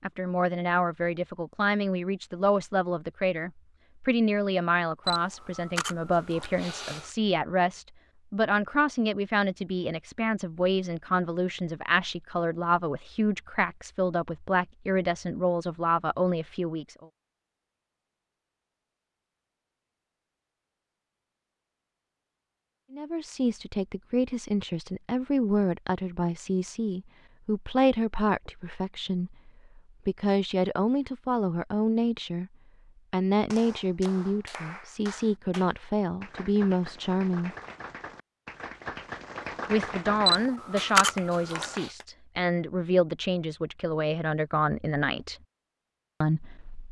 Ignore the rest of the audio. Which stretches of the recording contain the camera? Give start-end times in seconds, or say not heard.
5.0-7.1, 40.2-41.9.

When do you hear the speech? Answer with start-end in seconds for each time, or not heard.
0.0-17.1, 22.9-32.5, 33.1-37.5, 39.6-45.4, 46.2-46.8.